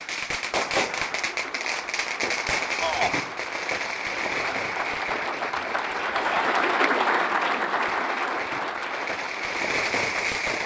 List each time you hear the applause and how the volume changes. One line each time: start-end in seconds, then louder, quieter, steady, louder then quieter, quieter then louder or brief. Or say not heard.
0.0-10.6 louder then quieter.